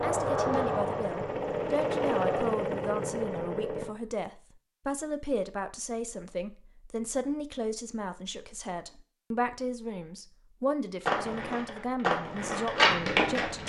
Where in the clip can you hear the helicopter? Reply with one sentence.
The helicopter can be heard from 0.0 to 4.0 s.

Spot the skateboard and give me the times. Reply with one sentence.
The skateboard can be heard from 0.0 to 2.6 s and from 11.1 to 13.6 s.